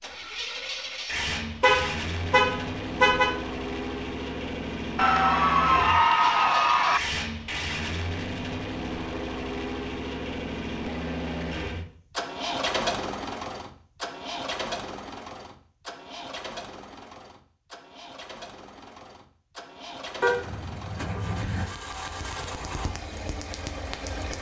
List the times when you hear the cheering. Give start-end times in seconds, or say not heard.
5.0-7.0.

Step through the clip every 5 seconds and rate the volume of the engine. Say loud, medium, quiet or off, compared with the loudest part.
loud, loud, loud, medium, medium.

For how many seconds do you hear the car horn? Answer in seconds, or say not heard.
3 s.